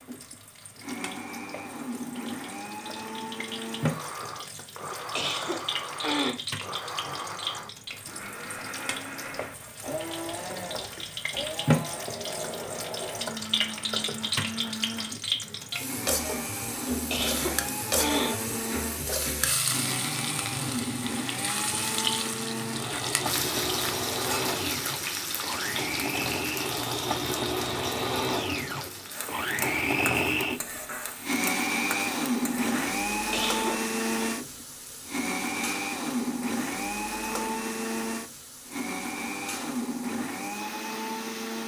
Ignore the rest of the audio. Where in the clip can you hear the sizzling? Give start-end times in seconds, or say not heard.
0.0-41.6.